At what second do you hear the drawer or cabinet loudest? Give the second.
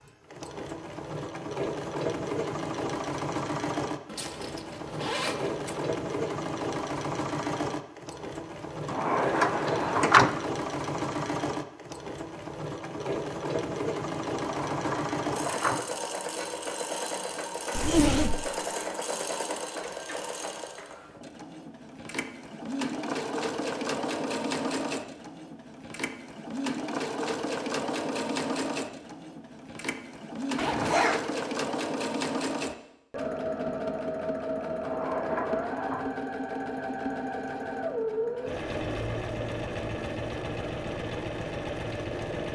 10 s.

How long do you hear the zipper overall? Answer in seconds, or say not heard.
3 s.